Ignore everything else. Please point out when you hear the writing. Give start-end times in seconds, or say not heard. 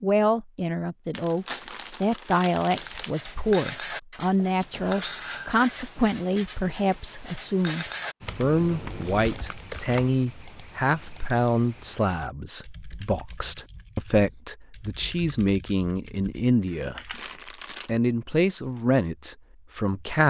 2.8-9.4.